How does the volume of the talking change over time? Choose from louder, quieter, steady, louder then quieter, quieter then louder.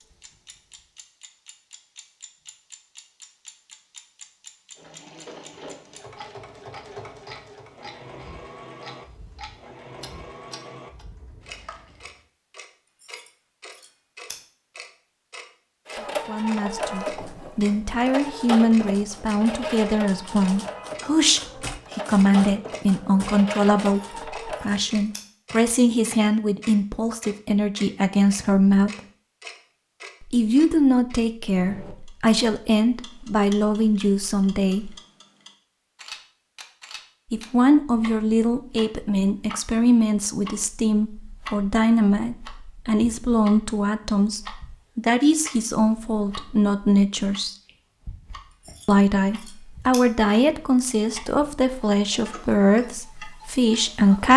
steady.